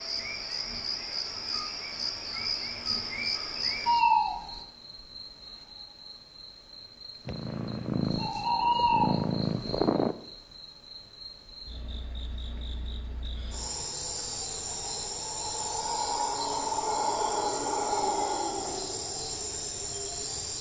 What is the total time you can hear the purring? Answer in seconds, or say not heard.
3 s.